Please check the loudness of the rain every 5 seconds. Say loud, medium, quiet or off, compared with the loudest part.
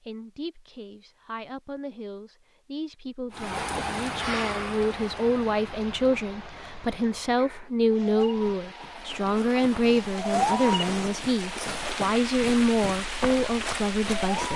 loud, medium, loud.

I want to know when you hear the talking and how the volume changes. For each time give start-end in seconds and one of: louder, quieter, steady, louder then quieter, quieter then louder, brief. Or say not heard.
0.0-14.5 louder.